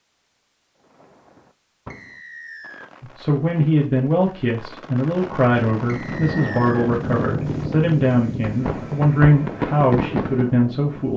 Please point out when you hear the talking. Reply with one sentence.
The talking can be heard from 3.0 to 11.1 s.